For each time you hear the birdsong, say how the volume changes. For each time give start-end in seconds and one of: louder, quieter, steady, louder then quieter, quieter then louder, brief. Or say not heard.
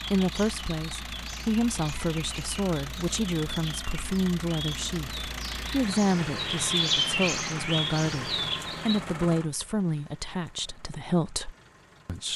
0.0-9.0 louder.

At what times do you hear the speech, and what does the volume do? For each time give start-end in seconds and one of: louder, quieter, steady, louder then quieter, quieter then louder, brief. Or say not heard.
0.1-12.3 steady.